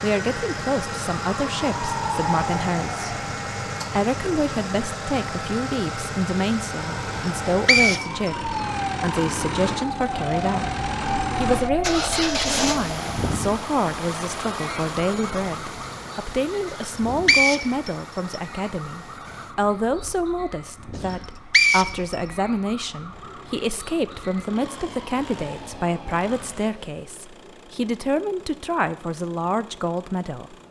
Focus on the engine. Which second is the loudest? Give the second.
12 s.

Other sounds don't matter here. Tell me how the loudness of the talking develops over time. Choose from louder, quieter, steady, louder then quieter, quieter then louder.
steady.